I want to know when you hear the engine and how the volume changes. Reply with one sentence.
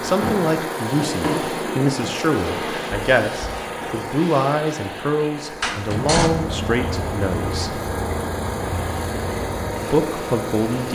The engine can be heard from 0.0 to 10.9 s, getting quieter then louder.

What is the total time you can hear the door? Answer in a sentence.
The door can be heard for 3 seconds in total.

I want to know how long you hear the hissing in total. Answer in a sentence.
The hissing can be heard for 11 seconds in total.